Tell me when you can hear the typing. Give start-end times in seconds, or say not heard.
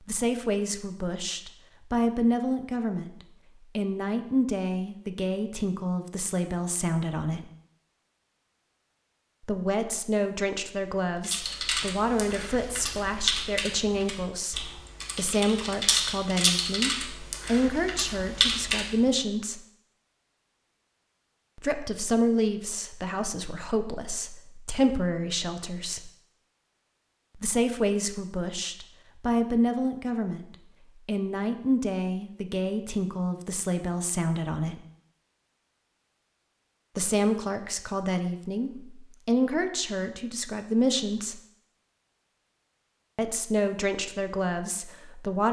11.2-19.1.